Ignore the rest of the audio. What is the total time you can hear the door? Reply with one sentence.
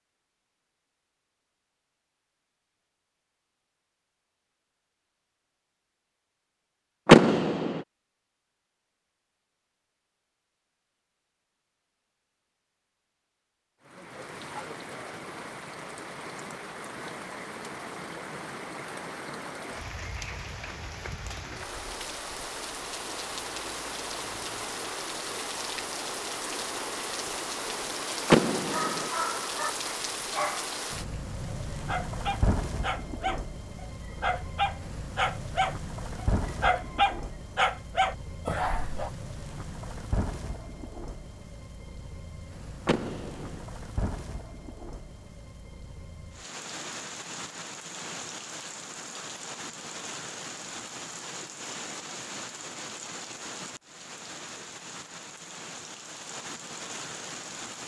You can hear the door for 2 seconds altogether.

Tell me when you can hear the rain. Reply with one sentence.
You can hear the rain from 13.8 to 57.8 s.